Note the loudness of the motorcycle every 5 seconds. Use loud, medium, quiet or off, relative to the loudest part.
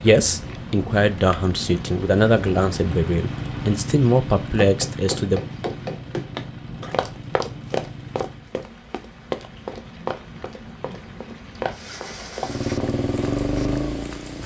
medium, medium, loud.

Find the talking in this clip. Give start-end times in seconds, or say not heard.
0.0-5.4.